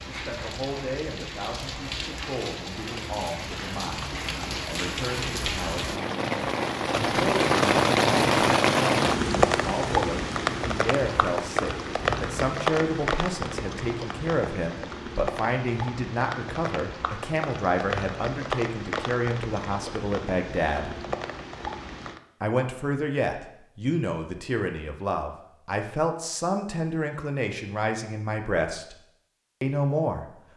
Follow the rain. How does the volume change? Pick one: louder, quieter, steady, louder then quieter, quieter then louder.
louder then quieter.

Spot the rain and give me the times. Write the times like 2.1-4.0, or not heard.
0.0-22.2.